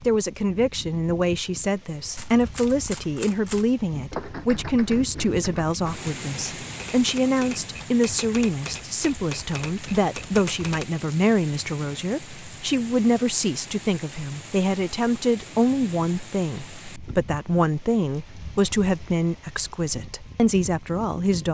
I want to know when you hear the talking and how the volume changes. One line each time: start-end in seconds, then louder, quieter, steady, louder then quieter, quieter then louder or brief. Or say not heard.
0.0-21.4 steady.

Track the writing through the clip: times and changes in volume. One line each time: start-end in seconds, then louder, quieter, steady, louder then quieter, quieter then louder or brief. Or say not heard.
not heard.